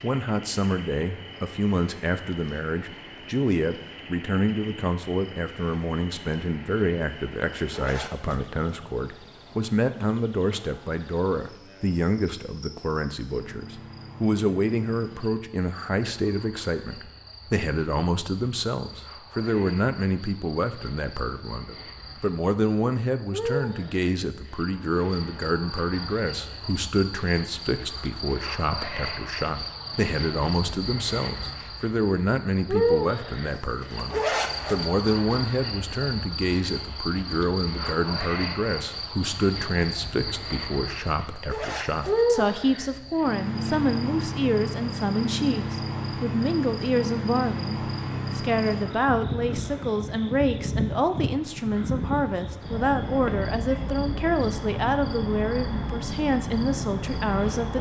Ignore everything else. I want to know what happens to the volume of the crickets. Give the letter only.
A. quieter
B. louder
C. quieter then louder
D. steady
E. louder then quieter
B.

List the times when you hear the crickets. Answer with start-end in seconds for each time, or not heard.
0.0-57.7.